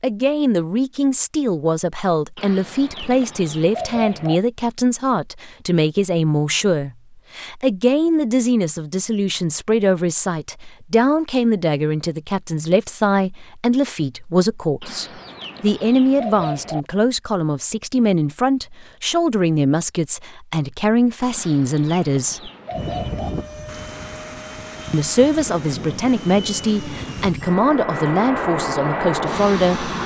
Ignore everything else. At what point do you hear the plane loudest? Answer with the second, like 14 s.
29 s.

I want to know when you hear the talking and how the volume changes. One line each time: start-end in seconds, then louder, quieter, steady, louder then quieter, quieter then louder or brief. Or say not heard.
0.0-22.5 steady
24.9-29.9 steady.